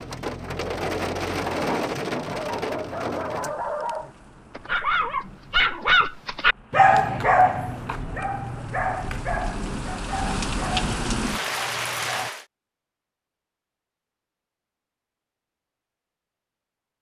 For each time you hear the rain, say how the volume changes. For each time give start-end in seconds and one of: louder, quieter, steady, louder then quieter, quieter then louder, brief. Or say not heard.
0.0-12.4 quieter then louder.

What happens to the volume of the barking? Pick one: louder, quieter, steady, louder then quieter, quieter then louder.
louder then quieter.